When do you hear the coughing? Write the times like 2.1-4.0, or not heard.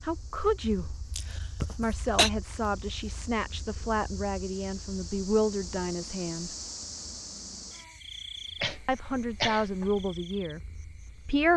1.1-2.3, 8.6-10.1.